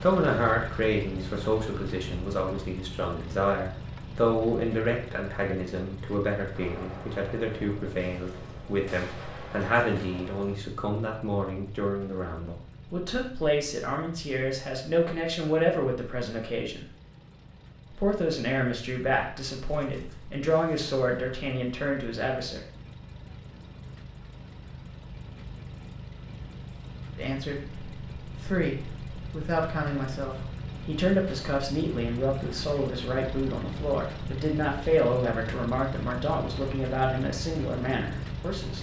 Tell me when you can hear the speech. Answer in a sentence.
The speech can be heard from 0.0 to 16.9 s, from 17.9 to 22.6 s and from 27.1 to 38.7 s.